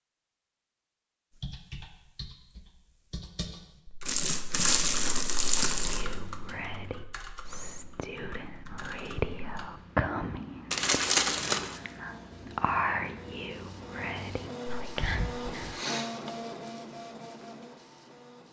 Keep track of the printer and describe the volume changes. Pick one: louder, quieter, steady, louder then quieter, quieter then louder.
louder then quieter.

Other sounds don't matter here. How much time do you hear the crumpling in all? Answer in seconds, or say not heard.
3 s.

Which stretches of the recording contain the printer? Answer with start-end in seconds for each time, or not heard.
11.7-18.4.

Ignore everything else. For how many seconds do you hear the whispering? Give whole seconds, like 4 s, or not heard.
10 s.